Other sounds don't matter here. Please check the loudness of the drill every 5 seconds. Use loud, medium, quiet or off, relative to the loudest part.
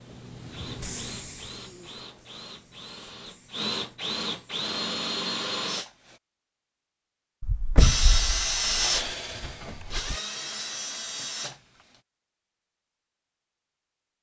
medium, loud, medium.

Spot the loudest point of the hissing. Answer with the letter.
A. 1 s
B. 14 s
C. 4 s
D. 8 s
A.